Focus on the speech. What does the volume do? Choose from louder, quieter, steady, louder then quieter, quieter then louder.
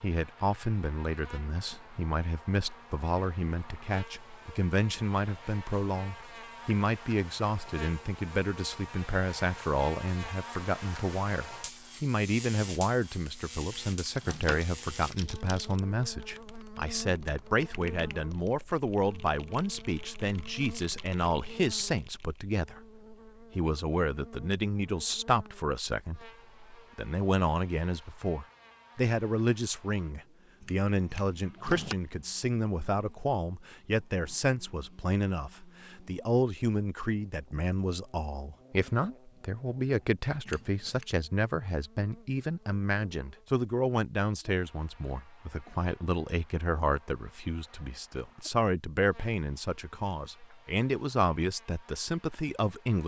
steady.